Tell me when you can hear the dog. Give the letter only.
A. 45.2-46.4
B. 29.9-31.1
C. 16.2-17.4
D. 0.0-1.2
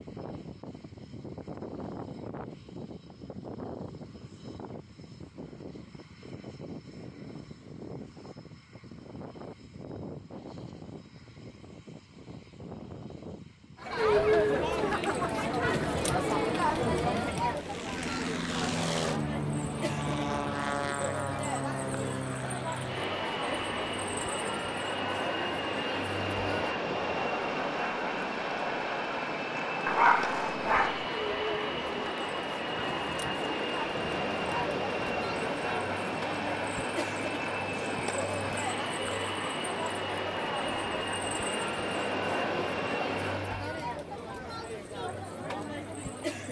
B.